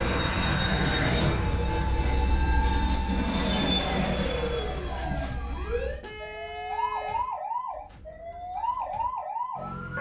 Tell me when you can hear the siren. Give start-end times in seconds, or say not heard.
0.0-9.9.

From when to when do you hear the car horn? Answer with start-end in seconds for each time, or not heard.
6.0-7.3.